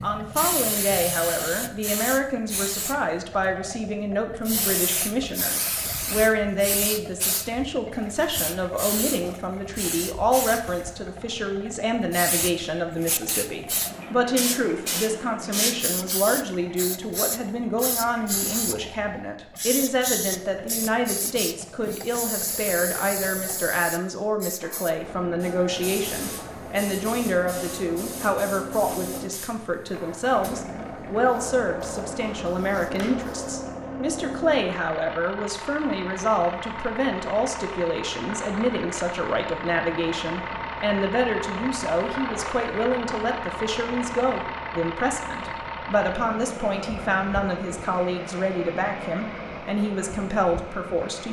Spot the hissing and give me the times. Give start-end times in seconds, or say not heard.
0.0-33.8.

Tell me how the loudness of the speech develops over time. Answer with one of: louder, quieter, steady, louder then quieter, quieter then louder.
steady.